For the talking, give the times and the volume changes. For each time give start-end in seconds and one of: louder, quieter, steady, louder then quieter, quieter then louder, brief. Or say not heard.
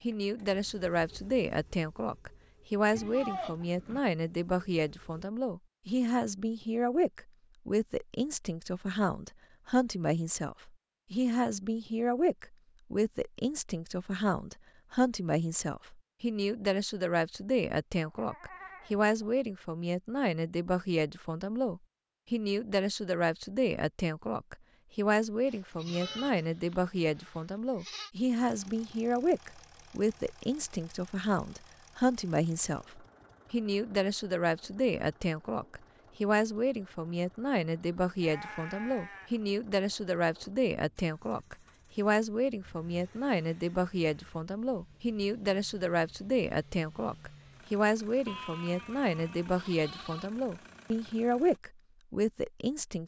0.0-53.0 steady.